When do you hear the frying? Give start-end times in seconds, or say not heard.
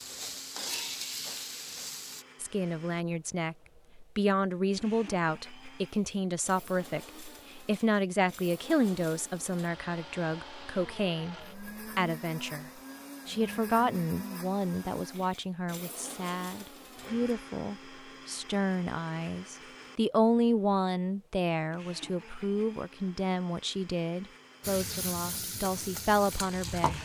0.0-2.2, 24.6-27.0.